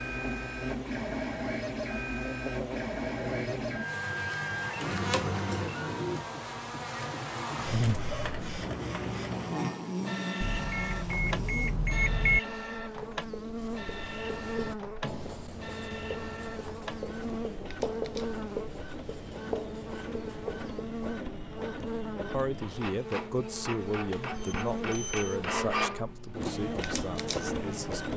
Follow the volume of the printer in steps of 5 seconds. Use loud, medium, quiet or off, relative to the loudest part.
loud, loud, medium, medium, medium, loud.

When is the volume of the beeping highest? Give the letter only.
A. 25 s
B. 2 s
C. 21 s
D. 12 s
D.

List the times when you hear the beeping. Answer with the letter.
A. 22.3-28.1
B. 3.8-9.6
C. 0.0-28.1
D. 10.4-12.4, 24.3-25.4
D.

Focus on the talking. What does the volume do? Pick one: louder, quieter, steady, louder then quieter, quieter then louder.
quieter.